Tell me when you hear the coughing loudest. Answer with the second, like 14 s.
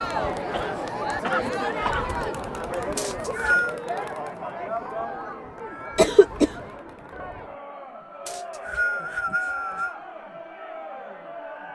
6 s.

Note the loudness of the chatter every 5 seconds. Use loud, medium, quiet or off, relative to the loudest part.
loud, medium, medium.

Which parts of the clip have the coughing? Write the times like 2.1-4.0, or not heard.
0.5-2.1, 6.0-6.5.